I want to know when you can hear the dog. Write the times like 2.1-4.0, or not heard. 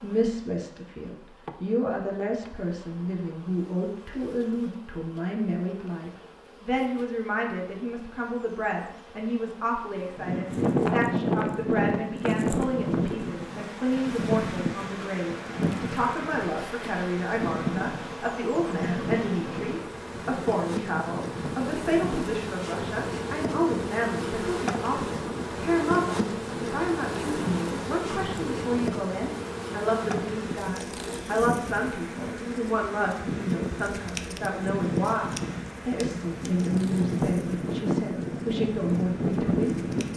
not heard.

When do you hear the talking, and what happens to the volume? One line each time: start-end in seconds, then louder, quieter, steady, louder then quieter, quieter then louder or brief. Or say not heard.
0.0-39.9 steady.